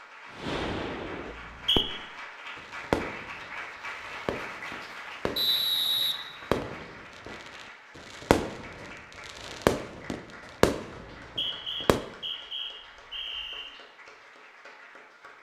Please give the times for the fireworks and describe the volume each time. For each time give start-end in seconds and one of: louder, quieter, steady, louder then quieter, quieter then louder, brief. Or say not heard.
0.3-12.1 quieter then louder.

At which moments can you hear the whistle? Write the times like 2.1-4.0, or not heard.
1.2-1.9, 5.3-6.8, 11.2-13.7.